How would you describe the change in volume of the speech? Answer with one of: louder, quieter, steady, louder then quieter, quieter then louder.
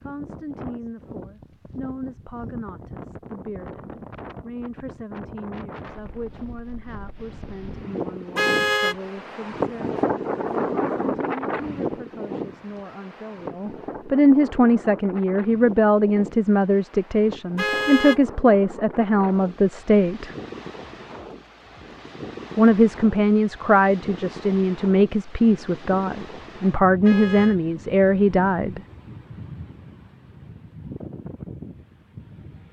louder.